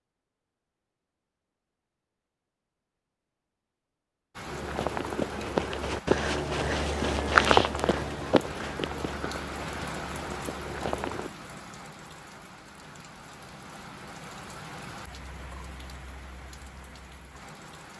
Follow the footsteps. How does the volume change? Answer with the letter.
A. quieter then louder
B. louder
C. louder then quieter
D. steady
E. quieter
C.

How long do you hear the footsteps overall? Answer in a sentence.
The footsteps can be heard for 7 seconds in total.